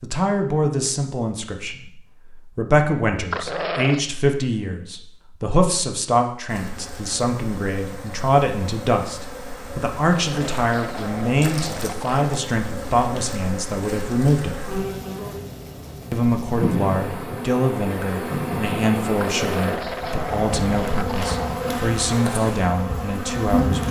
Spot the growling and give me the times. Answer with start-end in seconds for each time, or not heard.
3.3-4.0, 10.3-12.3, 19.2-21.8.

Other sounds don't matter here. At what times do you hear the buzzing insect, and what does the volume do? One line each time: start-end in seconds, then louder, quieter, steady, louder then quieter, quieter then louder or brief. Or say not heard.
6.5-23.8 louder.